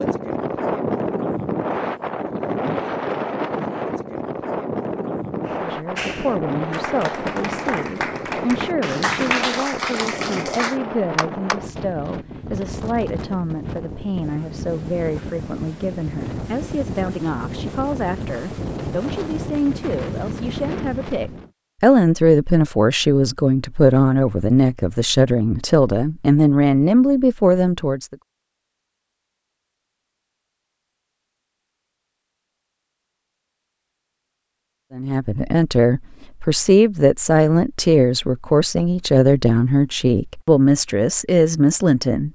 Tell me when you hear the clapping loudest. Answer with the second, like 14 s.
9 s.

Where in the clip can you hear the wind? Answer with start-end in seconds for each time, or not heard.
0.0-21.5.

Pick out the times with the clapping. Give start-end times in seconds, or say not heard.
5.5-11.6.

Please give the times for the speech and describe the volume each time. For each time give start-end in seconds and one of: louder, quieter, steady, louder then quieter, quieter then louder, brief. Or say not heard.
5.5-28.1 louder
34.9-42.3 steady.